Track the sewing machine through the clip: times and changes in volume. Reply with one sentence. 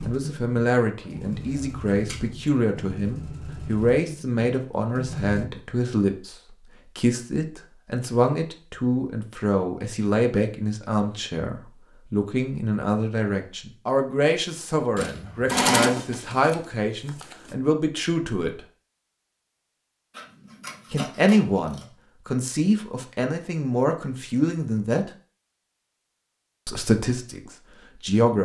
The sewing machine can be heard from 0.0 to 5.5 s, at a steady volume; and briefly from 14.9 to 17.6 s.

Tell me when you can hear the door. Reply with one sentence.
The door can't be heard in this clip.